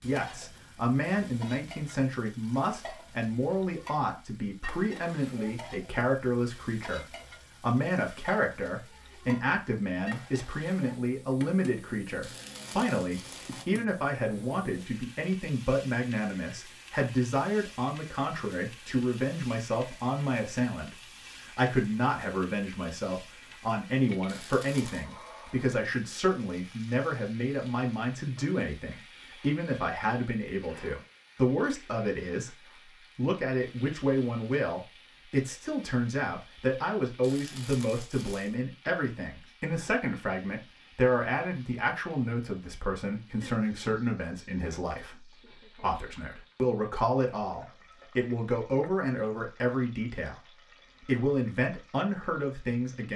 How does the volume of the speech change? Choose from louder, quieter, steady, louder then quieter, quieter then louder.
steady.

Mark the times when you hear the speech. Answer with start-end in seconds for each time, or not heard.
0.0-53.1.